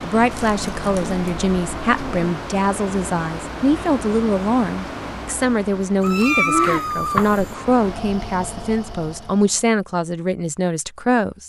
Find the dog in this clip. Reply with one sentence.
The dog can't be heard in this clip.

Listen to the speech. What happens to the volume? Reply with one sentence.
The volume of the speech stays about the same.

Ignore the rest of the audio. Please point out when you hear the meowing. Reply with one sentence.
You can hear the meowing from 0.3 to 2.3 s and from 6.0 to 7.5 s.